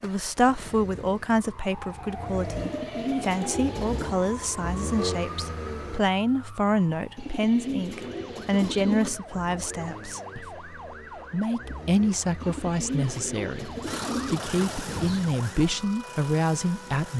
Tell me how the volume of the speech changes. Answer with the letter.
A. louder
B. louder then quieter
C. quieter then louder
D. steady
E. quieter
D.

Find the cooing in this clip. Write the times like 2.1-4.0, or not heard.
2.5-4.2, 7.2-9.2, 12.4-15.3.